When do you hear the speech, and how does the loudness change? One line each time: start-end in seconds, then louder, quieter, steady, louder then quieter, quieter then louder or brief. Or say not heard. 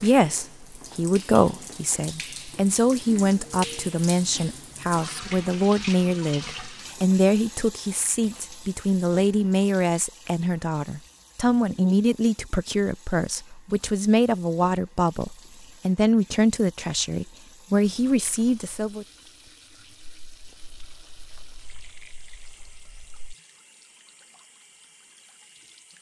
0.0-19.1 steady.